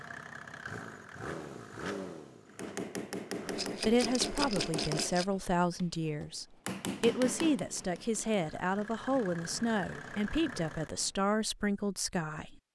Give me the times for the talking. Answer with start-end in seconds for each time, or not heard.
3.8-12.7.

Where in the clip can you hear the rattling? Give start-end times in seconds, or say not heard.
3.5-5.2.